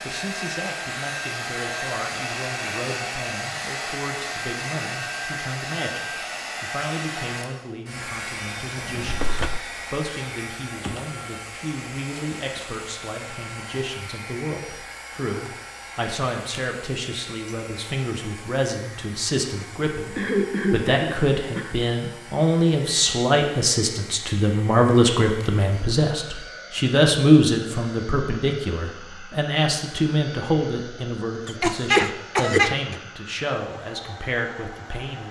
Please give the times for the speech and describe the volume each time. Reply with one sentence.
The speech can be heard from 0.1 to 35.2 s, getting louder then quieter.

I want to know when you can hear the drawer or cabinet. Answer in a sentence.
The drawer or cabinet can be heard from 8.8 to 9.6 s.